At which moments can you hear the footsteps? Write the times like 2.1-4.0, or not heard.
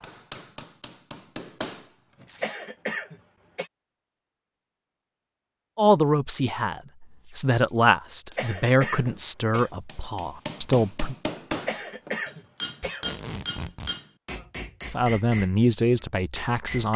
not heard.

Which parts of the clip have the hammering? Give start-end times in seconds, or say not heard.
0.0-2.2, 8.9-15.6, 16.4-16.9.